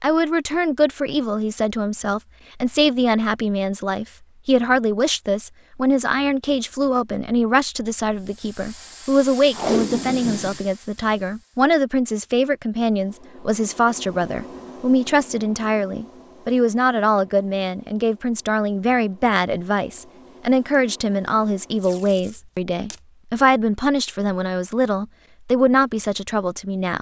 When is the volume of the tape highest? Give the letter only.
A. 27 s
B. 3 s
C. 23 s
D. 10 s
D.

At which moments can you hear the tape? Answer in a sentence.
You can hear the tape from 9.5 to 10.6 s and from 21.8 to 22.9 s.